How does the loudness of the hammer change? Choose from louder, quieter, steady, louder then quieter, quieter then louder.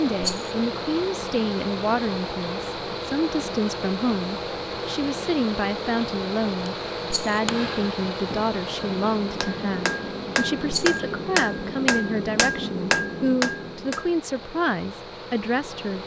louder.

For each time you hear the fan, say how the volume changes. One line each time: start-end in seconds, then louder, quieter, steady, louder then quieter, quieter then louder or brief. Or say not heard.
0.0-16.0 quieter.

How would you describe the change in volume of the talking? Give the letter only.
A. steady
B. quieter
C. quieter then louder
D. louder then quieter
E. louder
A.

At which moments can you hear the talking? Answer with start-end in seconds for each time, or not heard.
0.0-16.0.